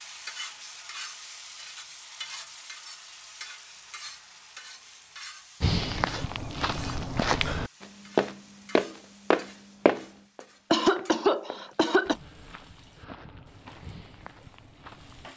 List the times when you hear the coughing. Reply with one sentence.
You can hear the coughing from 10.7 to 12.2 s.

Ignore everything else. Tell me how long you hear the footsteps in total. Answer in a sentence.
You can hear the footsteps for 10 seconds altogether.